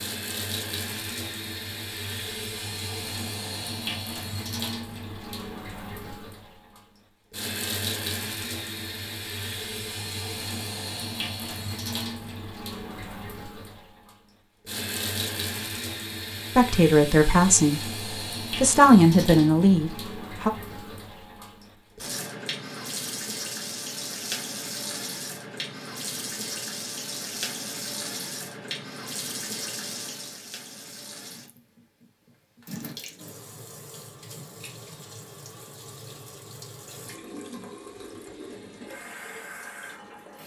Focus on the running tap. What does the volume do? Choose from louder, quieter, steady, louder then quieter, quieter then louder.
quieter.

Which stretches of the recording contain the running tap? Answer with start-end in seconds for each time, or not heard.
0.0-40.4.